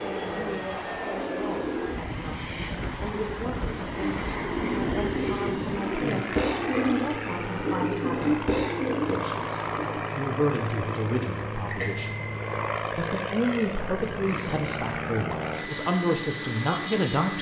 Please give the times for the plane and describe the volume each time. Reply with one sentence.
The plane can be heard from 0.0 to 17.3 s, at a steady volume.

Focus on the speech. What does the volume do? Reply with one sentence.
The loudness of the speech goes up.